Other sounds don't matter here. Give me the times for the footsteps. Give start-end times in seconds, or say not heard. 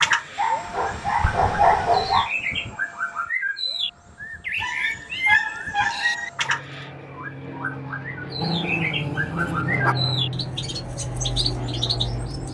not heard.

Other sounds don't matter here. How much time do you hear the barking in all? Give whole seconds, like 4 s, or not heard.
5 s.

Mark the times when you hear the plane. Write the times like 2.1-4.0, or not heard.
0.0-12.4.